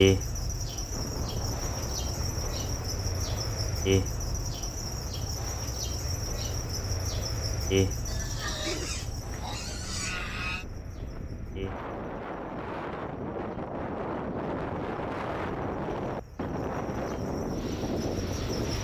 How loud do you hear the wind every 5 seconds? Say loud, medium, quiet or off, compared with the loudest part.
medium, quiet, loud, loud.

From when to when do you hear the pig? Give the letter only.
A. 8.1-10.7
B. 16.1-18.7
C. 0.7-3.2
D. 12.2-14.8
A.